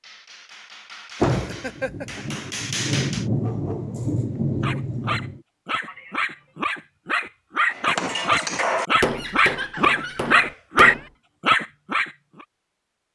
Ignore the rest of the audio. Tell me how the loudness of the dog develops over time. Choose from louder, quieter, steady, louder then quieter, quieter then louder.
louder.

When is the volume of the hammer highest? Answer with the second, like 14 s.
9 s.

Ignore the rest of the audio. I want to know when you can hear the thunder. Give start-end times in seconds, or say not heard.
1.2-5.4.